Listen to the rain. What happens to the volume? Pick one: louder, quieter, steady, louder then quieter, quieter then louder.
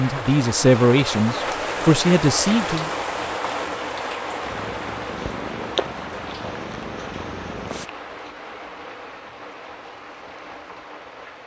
quieter.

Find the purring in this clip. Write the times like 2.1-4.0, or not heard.
4.4-7.9.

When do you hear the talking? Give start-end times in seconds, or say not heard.
0.0-2.9.